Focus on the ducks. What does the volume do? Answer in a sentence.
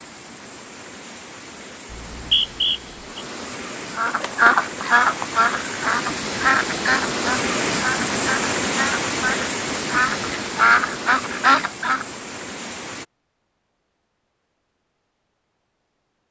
The volume of the ducks goes down, then up.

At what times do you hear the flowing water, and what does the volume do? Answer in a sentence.
The flowing water can be heard from 0.0 to 13.1 s, getting louder then quieter.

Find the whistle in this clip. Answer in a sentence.
You can hear the whistle from 1.9 to 3.2 s.